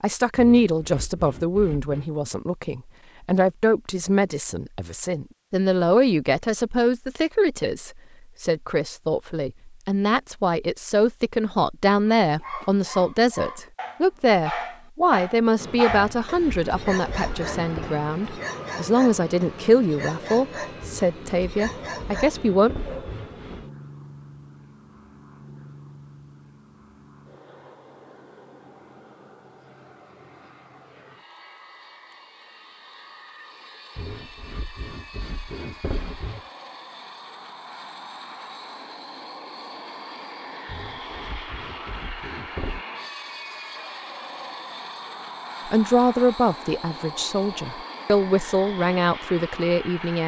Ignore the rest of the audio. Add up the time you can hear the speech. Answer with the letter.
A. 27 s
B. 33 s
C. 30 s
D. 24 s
A.